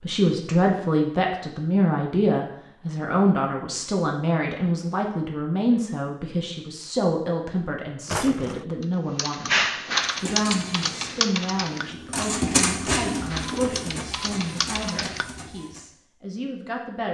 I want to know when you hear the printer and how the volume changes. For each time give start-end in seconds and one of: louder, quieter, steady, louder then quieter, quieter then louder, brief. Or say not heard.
10.1-15.8 louder then quieter.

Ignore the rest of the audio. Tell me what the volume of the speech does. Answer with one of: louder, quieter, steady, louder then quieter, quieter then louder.
quieter.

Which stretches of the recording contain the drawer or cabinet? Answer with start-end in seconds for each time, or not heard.
8.1-8.7.